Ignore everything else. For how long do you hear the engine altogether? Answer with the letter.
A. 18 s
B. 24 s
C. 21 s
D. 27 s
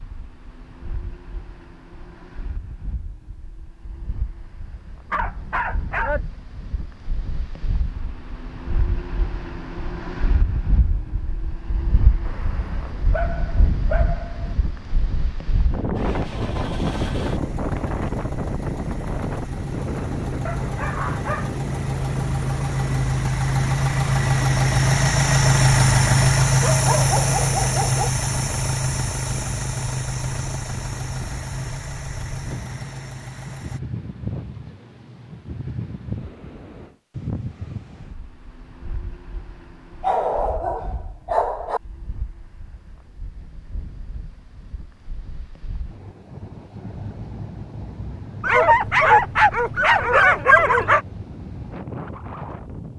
A.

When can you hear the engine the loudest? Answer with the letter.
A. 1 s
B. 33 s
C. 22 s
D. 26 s
D.